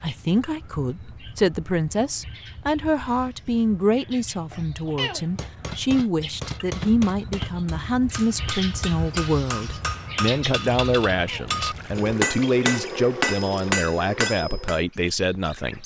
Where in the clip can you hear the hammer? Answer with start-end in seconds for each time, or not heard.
5.2-14.8.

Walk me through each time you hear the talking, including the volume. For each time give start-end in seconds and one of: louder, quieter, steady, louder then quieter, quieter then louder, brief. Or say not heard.
0.0-15.8 steady.